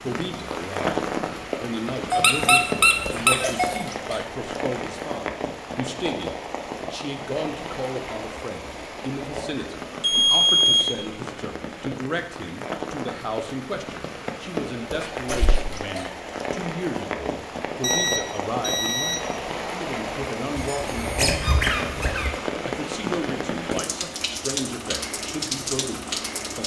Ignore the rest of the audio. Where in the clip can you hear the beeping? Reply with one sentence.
The beeping can be heard from 2.1 to 3.9 s, from 10.0 to 11.0 s and from 17.8 to 19.2 s.